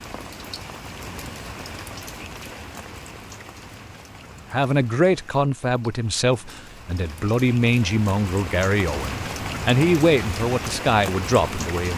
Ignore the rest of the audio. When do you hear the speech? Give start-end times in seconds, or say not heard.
4.5-11.9.